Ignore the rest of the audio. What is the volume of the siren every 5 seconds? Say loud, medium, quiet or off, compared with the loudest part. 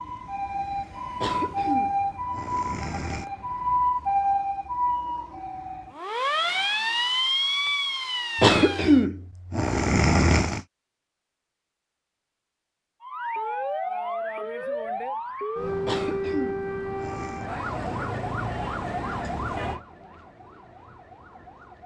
loud, loud, loud, loud, quiet.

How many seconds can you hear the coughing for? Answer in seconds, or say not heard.
6 s.